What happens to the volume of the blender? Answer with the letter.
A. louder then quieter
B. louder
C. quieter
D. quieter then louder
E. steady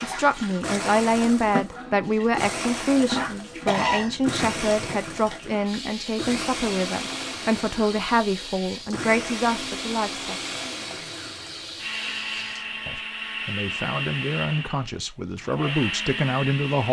E.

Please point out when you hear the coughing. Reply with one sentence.
You can hear the coughing from 3.6 to 5.0 s.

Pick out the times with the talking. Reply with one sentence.
The talking can be heard from 0.0 to 10.3 s and from 12.8 to 16.8 s.